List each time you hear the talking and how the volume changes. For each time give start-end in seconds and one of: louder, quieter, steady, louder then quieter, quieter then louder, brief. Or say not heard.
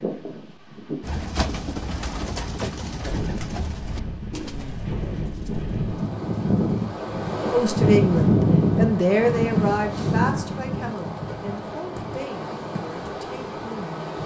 7.5-14.2 quieter.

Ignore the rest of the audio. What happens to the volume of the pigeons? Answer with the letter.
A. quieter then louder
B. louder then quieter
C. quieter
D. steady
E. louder
C.